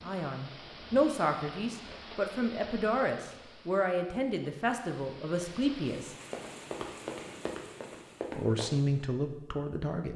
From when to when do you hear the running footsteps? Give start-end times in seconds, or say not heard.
6.2-8.7.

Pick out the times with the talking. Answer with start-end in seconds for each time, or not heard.
0.0-6.2, 8.3-10.1.